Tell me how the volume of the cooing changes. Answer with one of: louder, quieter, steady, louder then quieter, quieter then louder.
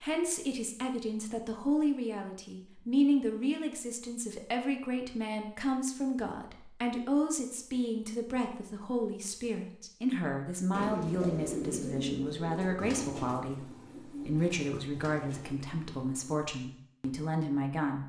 quieter.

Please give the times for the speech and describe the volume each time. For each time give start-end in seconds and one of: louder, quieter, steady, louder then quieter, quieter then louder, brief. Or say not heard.
0.0-18.0 steady.